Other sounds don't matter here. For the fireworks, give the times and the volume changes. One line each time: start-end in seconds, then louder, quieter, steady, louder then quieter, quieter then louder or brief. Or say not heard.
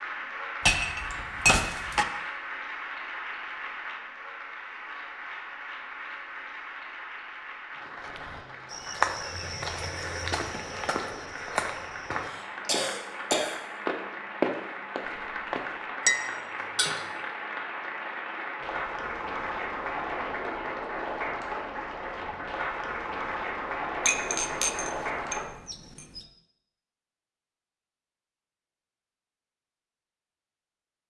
not heard.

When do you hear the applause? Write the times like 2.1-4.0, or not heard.
0.0-25.4.